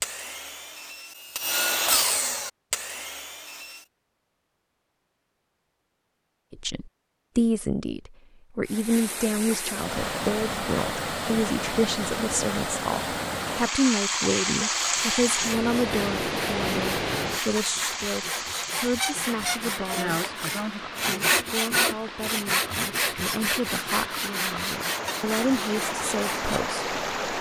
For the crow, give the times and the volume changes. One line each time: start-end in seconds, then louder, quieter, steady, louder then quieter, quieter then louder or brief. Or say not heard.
not heard.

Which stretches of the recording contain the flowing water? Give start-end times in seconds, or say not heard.
8.7-27.3.